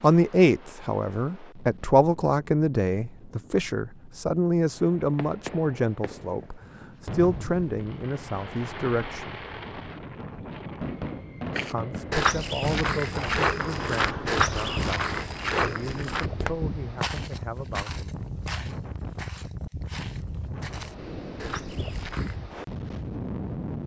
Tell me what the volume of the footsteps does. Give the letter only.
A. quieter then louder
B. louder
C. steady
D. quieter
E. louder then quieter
D.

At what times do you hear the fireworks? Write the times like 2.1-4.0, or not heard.
4.8-15.3.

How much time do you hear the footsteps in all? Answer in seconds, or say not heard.
11 s.